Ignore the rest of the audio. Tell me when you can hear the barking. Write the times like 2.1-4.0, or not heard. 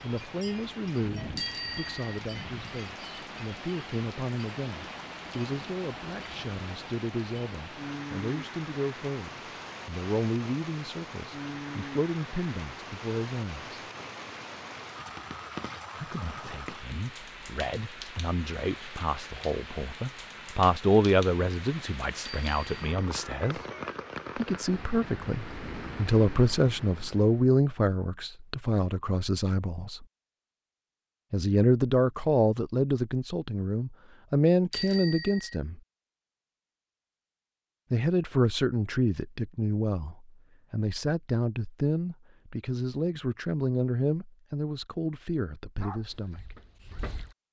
45.8-47.4.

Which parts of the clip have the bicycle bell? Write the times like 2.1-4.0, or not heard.
1.4-2.2, 22.2-23.1, 34.7-35.5.